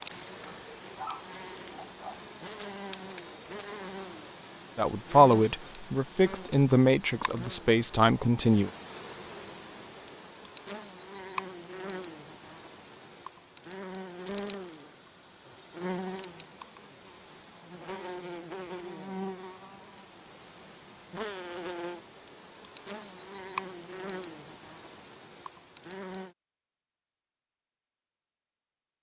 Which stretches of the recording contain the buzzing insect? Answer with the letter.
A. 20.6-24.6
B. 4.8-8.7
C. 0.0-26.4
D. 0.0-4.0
C.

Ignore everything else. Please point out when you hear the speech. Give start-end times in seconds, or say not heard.
4.8-8.7.